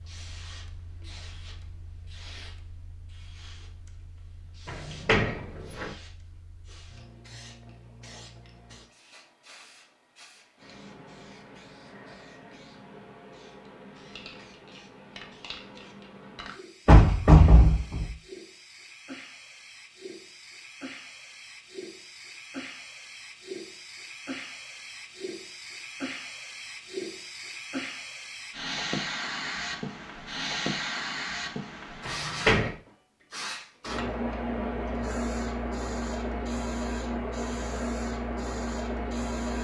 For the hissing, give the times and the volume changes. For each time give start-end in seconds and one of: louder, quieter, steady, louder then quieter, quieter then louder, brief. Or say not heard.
0.0-39.5 louder.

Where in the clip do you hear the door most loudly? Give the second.
17 s.